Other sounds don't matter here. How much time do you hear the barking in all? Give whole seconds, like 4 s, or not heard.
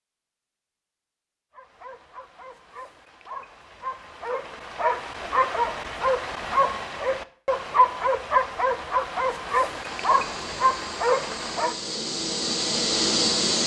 10 s.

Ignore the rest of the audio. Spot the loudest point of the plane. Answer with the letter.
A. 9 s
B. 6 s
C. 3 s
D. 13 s
D.